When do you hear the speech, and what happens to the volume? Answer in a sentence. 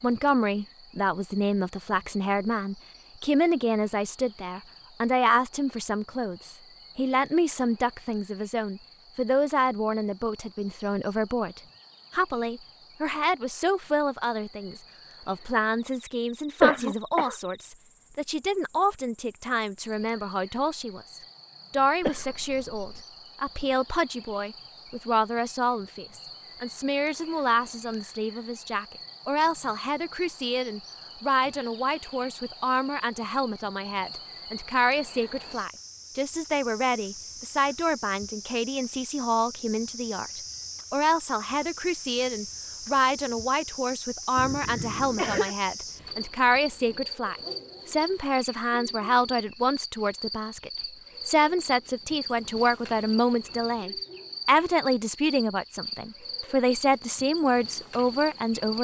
You can hear the speech from 0.0 to 58.7 s, at a steady volume.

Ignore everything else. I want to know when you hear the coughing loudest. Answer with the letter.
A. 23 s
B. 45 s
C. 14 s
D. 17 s
D.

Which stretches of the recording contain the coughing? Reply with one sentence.
The coughing can be heard from 16.6 to 17.4 s, from 22.0 to 23.0 s and from 44.4 to 45.5 s.